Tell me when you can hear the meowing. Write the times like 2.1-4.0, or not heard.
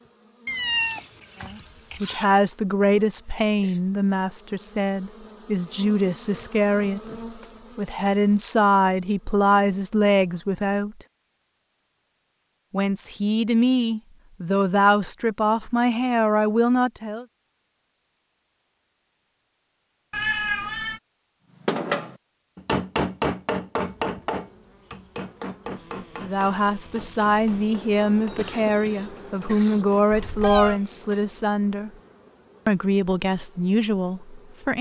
0.5-2.2, 20.1-21.0, 30.1-30.8.